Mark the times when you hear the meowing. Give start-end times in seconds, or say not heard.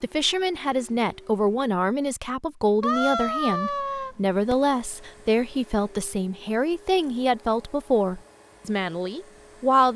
2.8-4.5.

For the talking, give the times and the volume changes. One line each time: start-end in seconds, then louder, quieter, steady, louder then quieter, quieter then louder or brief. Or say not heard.
0.0-9.9 steady.